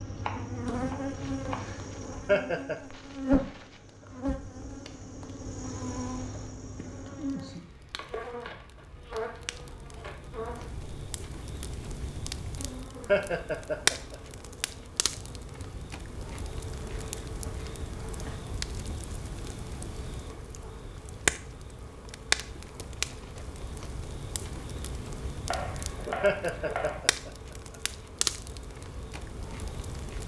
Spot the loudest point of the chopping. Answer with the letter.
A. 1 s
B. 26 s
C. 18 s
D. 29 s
B.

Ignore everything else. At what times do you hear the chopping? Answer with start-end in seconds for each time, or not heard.
0.1-1.6, 25.4-27.0.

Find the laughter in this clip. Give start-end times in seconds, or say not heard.
2.2-2.8, 13.1-14.2, 26.2-27.3.